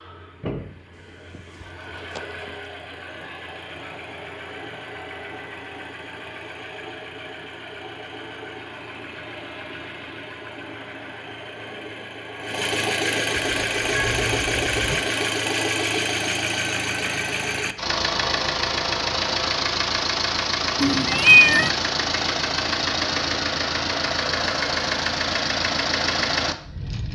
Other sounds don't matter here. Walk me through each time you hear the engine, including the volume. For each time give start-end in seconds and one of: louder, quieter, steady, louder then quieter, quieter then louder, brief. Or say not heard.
0.0-27.1 louder.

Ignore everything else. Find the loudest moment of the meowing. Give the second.
21 s.